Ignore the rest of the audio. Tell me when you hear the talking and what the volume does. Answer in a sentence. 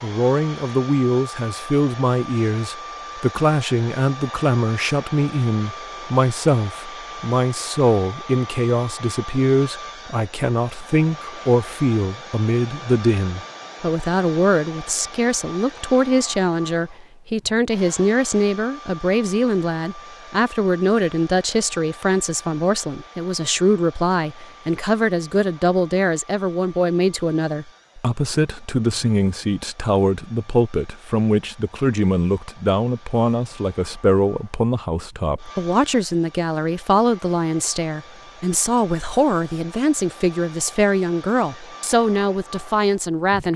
The talking can be heard from 0.0 to 43.5 s, at a steady volume.